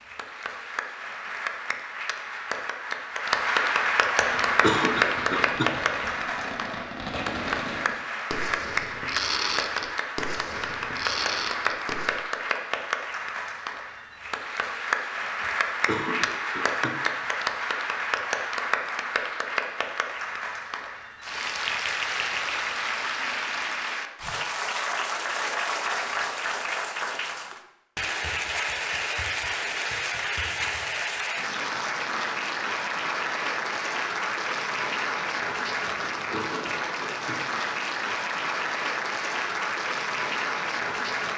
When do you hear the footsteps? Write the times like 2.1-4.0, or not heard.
not heard.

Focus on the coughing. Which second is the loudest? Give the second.
5 s.